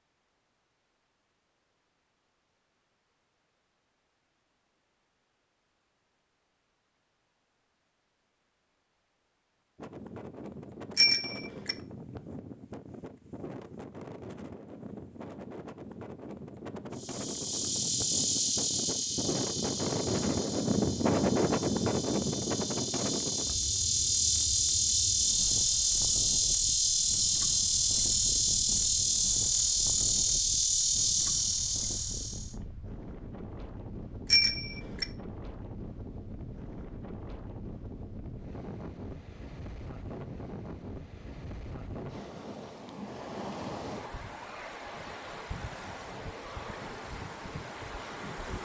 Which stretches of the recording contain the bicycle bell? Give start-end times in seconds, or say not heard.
10.9-11.8, 34.3-35.0.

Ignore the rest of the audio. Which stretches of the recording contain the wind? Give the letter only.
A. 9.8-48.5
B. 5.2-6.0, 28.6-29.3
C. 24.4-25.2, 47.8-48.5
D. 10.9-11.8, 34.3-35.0
A.